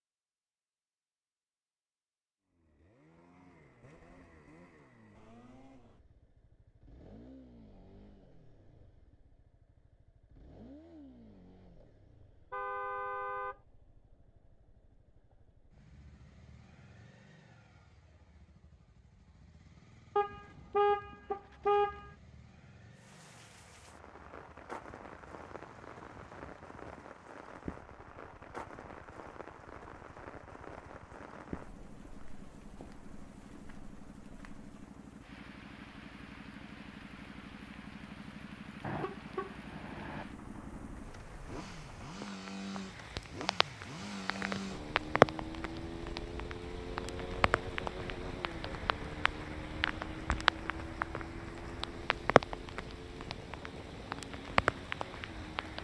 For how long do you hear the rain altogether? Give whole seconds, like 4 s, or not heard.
33 s.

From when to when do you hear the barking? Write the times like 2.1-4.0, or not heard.
not heard.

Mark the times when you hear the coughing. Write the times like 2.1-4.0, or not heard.
not heard.